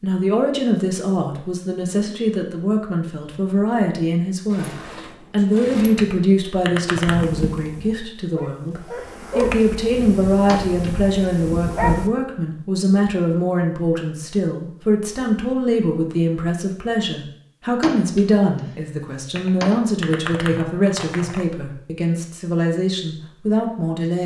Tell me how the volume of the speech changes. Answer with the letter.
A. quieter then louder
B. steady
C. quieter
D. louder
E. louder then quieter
B.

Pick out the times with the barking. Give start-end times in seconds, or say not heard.
7.0-12.1.